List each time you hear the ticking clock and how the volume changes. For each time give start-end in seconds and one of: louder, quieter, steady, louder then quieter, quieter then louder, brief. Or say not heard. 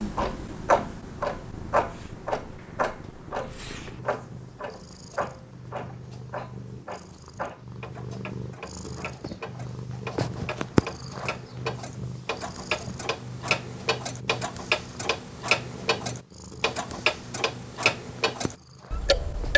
0.0-19.5 quieter then louder.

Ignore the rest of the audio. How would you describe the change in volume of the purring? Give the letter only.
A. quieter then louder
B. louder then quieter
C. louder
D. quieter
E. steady
B.